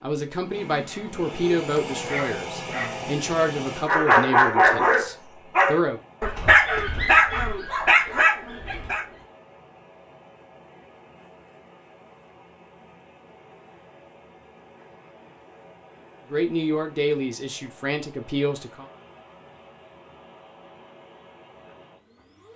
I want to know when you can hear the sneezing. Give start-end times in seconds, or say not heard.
not heard.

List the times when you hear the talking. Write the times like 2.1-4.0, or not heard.
0.0-6.0, 16.3-18.9.